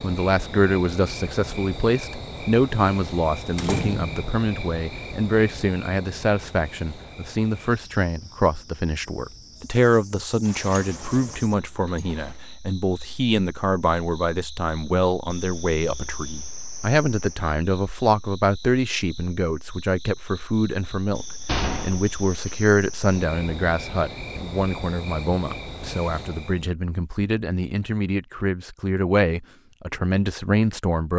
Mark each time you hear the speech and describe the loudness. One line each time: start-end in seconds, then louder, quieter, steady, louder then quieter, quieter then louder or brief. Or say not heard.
0.0-31.1 steady.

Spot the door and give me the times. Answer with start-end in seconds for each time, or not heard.
3.5-4.2, 10.4-12.3, 21.4-22.6.